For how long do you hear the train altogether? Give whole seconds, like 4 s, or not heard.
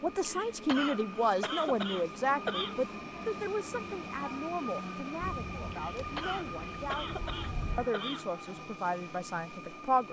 10 s.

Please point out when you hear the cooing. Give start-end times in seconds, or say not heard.
not heard.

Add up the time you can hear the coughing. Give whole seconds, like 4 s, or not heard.
5 s.